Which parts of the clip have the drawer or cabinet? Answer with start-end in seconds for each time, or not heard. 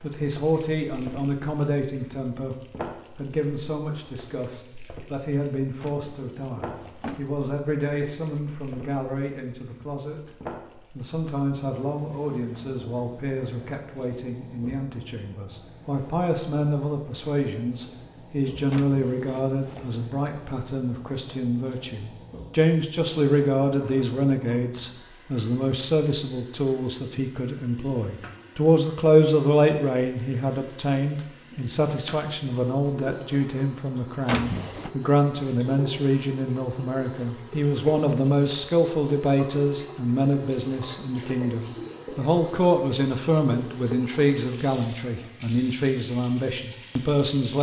5.8-7.4, 18.7-19.9, 34.2-34.9.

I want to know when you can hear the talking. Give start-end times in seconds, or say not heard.
0.0-10.3, 10.9-47.5.